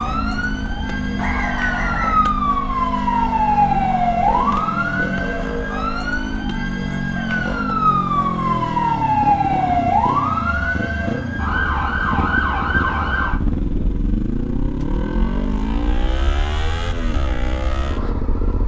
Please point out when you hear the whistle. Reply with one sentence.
The whistle can be heard from 1.1 to 2.2 s.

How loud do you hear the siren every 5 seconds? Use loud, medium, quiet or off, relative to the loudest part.
loud, loud, loud, quiet.